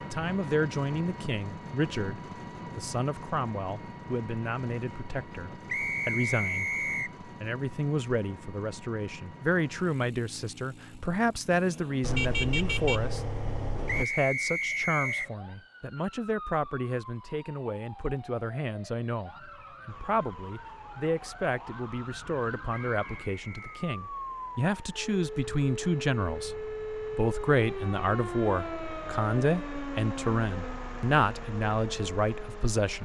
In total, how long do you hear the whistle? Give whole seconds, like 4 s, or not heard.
4 s.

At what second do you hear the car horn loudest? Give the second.
12 s.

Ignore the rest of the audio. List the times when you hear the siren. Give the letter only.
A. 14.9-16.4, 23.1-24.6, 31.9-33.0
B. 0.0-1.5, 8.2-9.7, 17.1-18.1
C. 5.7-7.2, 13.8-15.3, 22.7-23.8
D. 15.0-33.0
D.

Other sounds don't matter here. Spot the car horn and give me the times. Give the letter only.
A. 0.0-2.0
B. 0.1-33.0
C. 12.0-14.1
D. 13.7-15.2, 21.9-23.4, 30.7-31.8
C.